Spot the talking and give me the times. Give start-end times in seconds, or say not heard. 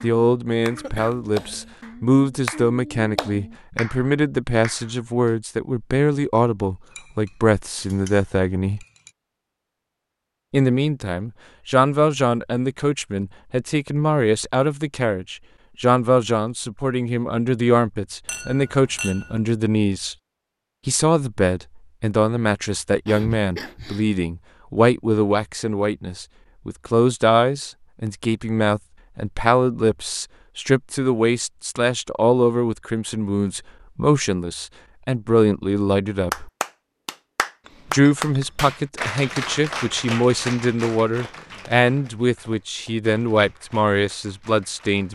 0.0-8.8, 10.5-20.1, 20.9-36.5, 37.9-45.1.